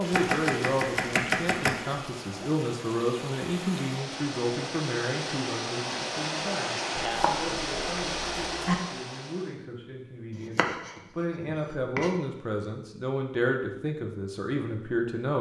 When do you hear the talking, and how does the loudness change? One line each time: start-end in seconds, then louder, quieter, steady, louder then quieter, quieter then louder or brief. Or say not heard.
0.0-15.3 quieter then louder.